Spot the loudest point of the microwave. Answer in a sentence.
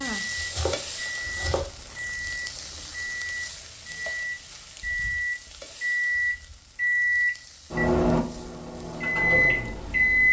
The volume of the microwave peaks at 10 seconds.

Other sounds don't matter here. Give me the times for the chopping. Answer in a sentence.
The chopping can be heard from 0.3 to 1.6 s.